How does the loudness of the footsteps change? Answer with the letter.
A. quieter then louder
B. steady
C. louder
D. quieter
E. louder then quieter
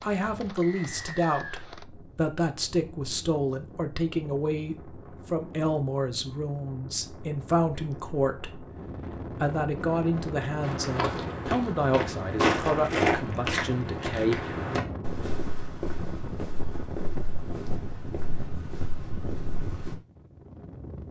D.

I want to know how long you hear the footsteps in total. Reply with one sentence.
You can hear the footsteps for 9 seconds altogether.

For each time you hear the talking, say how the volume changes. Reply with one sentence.
The talking can be heard from 0.0 to 14.7 s, at a steady volume.